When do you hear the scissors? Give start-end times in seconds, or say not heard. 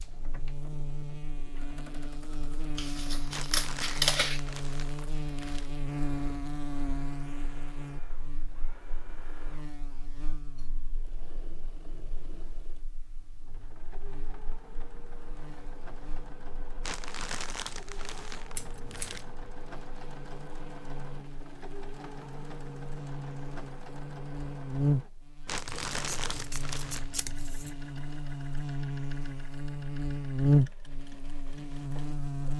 2.8-4.4, 18.6-19.4, 25.9-27.8.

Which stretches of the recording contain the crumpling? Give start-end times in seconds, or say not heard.
3.3-5.7, 16.8-19.2, 25.4-27.1.